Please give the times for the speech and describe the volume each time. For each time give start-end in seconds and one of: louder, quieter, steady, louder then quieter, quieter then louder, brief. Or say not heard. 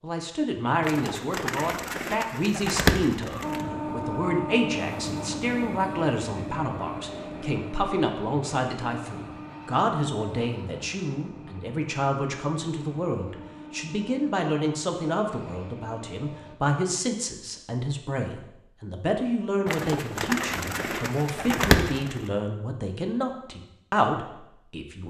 0.0-25.0 steady.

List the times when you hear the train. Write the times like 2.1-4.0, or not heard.
3.4-16.6.